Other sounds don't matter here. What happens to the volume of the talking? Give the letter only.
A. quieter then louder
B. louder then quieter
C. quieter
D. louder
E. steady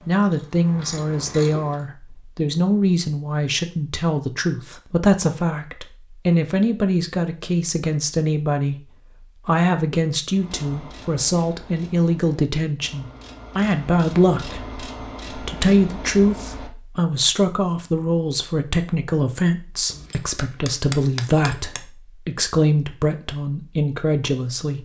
E.